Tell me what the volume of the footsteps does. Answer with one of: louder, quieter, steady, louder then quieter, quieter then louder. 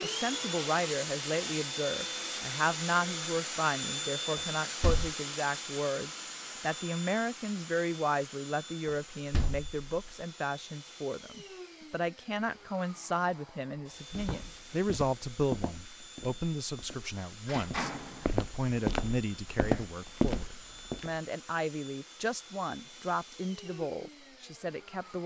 quieter then louder.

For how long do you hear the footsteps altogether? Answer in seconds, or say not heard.
7 s.